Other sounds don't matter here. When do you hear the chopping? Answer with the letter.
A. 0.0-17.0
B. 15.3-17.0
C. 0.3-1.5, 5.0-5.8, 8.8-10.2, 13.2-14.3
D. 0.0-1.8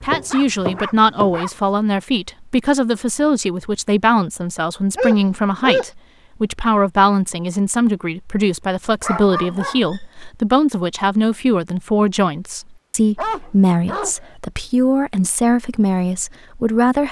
D.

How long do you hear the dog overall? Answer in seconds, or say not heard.
5 s.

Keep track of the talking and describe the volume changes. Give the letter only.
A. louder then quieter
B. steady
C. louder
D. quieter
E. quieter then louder
B.